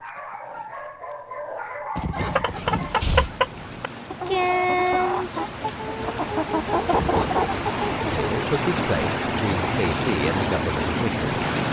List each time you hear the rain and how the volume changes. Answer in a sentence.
The rain can be heard from 2.5 to 11.6 s, getting louder.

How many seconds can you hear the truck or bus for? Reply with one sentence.
You can't hear the truck or bus here.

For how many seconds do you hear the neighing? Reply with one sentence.
The neighing can be heard for 2 seconds in total.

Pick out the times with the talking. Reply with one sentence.
The talking can be heard from 8.0 to 11.2 s.